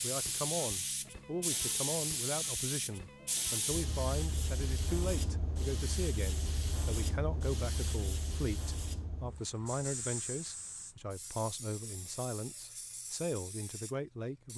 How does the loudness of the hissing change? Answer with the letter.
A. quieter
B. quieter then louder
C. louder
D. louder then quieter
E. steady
A.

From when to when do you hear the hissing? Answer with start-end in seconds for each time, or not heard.
0.0-14.5.